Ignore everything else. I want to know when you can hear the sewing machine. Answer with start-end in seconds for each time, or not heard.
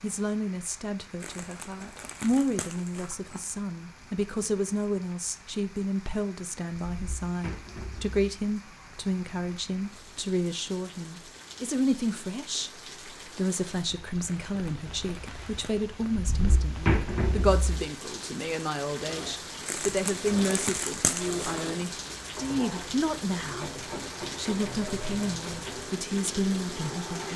19.0-27.3.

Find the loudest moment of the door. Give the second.
17 s.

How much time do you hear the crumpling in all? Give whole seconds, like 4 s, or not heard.
6 s.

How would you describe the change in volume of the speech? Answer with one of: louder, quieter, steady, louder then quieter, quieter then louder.
steady.